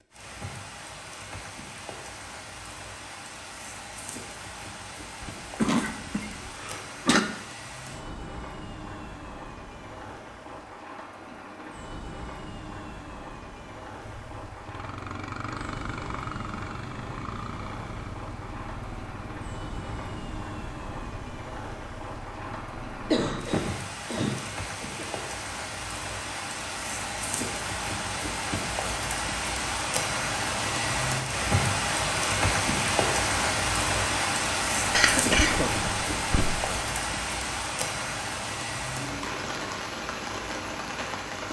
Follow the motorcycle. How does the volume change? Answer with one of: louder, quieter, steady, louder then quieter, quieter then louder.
quieter.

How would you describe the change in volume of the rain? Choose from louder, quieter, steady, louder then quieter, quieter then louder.
louder.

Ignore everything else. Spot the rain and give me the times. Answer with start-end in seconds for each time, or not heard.
0.0-41.4.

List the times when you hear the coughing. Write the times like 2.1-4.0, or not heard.
5.2-7.2, 23.1-25.1, 34.9-36.5.